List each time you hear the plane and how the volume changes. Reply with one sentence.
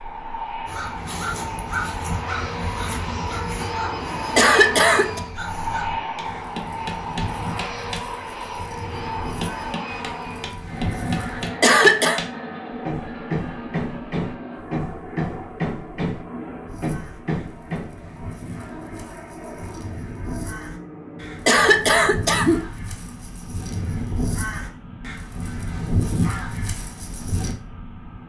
The plane can be heard from 0.0 to 28.2 s, getting quieter.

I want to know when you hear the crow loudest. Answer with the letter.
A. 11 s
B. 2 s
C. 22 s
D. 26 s
D.